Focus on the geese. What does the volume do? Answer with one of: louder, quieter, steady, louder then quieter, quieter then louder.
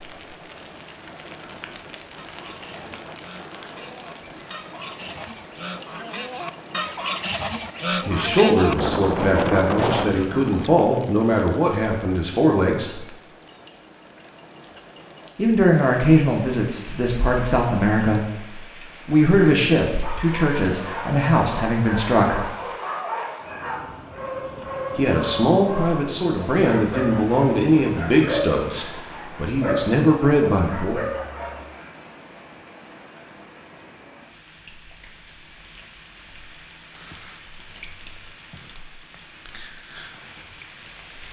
louder.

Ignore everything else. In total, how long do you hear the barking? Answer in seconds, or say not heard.
12 s.